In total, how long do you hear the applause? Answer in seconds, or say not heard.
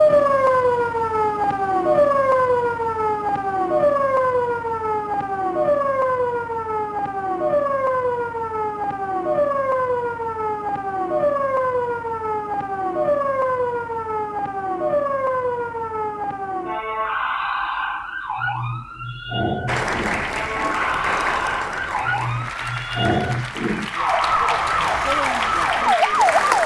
7 s.